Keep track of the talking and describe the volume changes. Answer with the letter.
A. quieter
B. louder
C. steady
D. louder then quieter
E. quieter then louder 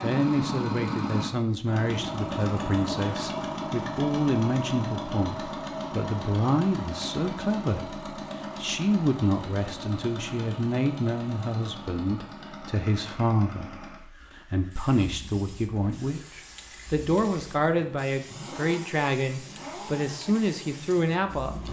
C.